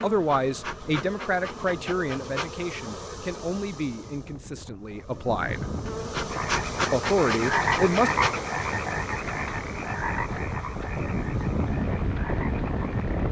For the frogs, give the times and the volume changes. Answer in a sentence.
The frogs can be heard from 6.2 to 13.2 s, getting quieter.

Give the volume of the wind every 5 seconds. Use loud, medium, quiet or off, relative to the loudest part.
quiet, medium, loud.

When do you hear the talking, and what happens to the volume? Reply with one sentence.
You can hear the talking from 0.0 to 5.7 s, getting quieter; and briefly from 6.9 to 8.1 s.